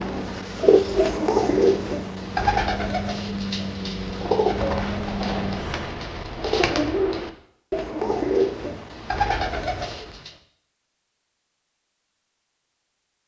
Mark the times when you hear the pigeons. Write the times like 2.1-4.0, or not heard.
0.0-10.3.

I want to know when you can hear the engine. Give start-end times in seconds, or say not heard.
0.0-5.9.